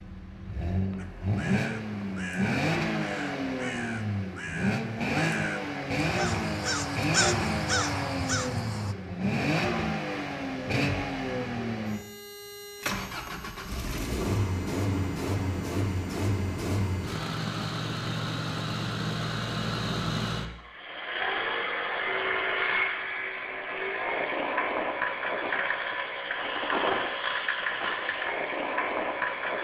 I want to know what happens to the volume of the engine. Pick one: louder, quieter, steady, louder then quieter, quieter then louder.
steady.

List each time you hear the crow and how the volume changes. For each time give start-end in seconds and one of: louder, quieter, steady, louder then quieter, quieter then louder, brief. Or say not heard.
0.9-8.9 louder.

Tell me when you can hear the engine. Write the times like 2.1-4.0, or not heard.
0.0-29.5.